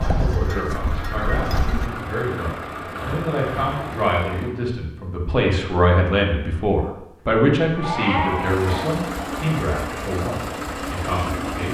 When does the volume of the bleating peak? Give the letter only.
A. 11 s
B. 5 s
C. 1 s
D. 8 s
D.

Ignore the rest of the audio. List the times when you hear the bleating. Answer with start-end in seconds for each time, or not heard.
0.0-1.9, 7.2-8.7.